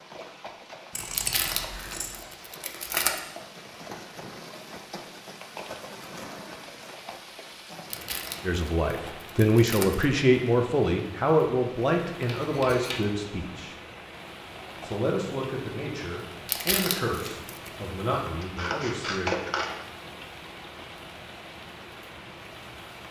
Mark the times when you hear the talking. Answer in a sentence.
You can hear the talking from 8.4 to 13.8 s and from 14.8 to 19.3 s.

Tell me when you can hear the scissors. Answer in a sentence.
The scissors can be heard from 0.9 to 2.1 s, from 12.2 to 13.1 s and from 18.4 to 19.7 s.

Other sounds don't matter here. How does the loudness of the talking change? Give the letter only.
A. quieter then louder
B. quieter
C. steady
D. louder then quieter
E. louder
B.